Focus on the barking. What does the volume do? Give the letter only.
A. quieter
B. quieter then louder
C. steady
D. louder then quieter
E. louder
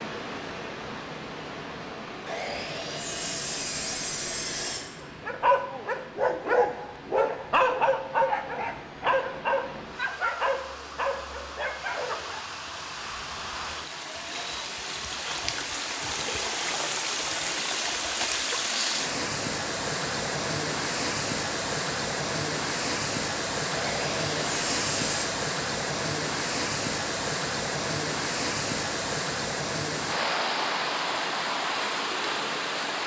A.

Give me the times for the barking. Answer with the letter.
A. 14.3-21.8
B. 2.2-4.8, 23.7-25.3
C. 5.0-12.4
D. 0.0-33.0
C.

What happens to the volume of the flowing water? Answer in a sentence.
The loudness of the flowing water goes up.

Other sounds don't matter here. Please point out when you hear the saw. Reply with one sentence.
You can hear the saw from 2.2 to 4.8 s and from 23.7 to 25.3 s.